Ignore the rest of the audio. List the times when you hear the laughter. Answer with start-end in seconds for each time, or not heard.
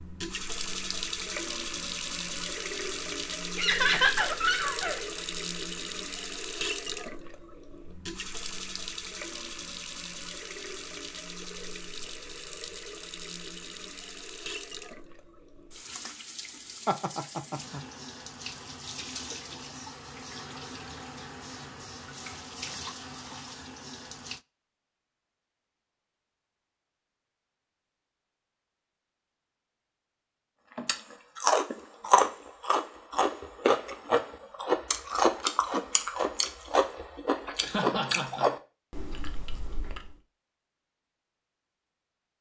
3.5-5.0, 16.9-17.8, 37.6-38.5.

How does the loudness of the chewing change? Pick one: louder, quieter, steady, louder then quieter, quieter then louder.
quieter.